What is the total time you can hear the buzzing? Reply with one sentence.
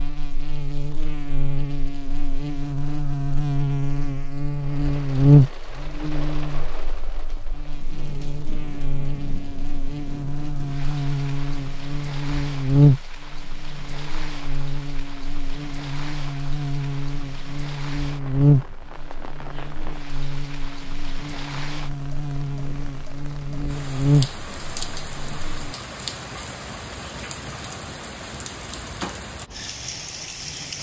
The buzzing can be heard for 26 seconds in total.